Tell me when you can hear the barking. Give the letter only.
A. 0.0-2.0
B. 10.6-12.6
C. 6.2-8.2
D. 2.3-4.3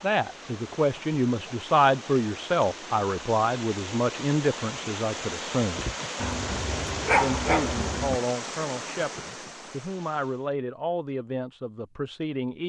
C.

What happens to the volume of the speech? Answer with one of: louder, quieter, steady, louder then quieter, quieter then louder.
quieter.